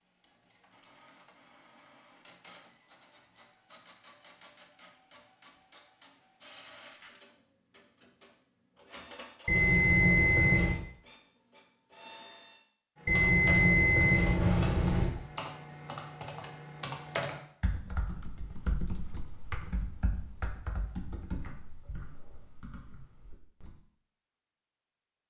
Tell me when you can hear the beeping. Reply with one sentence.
The beeping can be heard from 9.4 to 10.8 s and from 13.1 to 15.1 s.